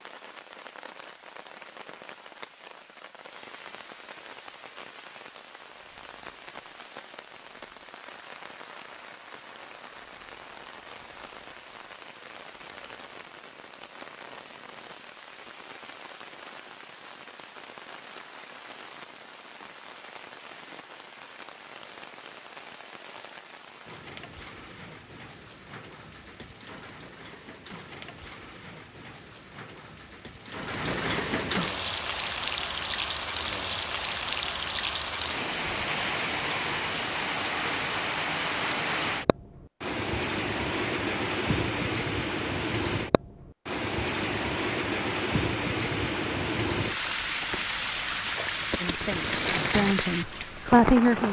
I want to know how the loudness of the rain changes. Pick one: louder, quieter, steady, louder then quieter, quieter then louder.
louder.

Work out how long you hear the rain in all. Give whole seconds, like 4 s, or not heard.
51 s.